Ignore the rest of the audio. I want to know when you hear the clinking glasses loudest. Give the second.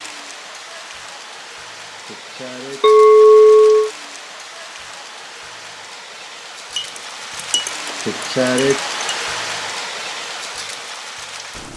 3 s.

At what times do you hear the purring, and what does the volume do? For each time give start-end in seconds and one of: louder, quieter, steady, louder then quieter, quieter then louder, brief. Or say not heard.
not heard.